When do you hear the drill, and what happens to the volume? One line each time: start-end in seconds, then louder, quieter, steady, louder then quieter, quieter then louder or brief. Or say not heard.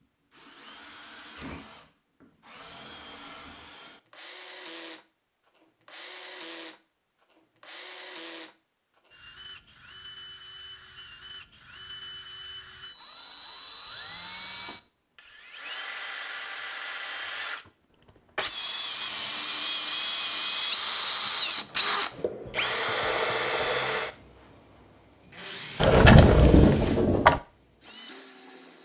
0.0-28.8 louder.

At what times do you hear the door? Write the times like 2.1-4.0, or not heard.
25.8-27.4.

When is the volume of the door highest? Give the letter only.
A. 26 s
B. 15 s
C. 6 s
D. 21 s
A.